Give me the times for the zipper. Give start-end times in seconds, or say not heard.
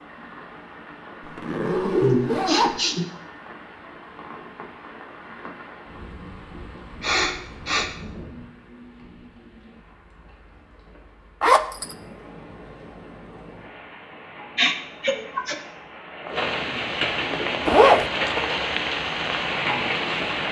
1.2-2.8, 11.4-11.9, 17.6-18.1.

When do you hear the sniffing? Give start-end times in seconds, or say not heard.
2.0-3.0, 7.0-7.8, 14.6-15.6.